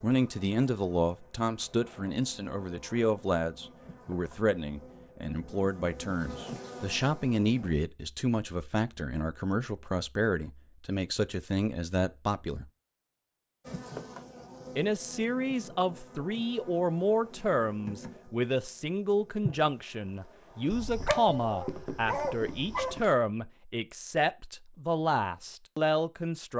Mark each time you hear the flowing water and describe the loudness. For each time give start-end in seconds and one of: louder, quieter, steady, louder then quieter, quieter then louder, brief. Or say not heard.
not heard.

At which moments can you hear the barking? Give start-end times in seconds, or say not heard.
20.7-23.1.